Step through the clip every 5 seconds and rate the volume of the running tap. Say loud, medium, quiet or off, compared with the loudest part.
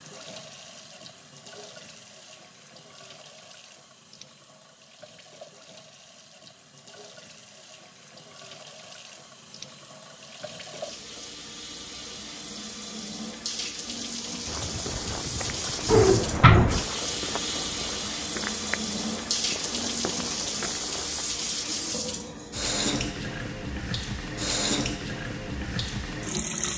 quiet, quiet, medium, loud, loud, loud.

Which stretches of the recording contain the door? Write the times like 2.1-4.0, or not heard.
15.8-16.9.